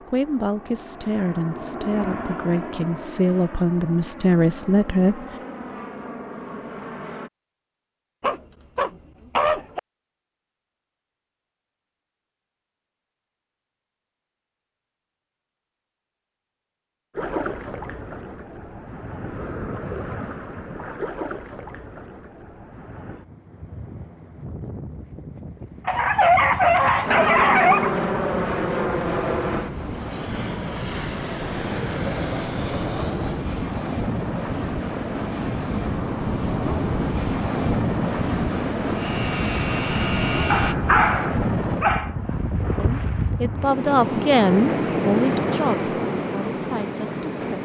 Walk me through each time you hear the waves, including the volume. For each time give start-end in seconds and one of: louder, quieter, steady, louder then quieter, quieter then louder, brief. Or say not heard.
17.1-47.6 louder.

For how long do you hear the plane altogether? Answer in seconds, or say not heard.
21 s.